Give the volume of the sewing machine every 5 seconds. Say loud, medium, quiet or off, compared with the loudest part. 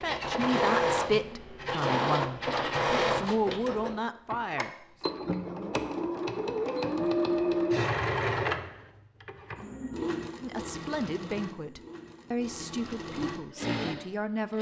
loud, loud, medium.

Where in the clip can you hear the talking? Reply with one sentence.
The talking can be heard from 0.0 to 4.8 s and from 10.4 to 14.5 s.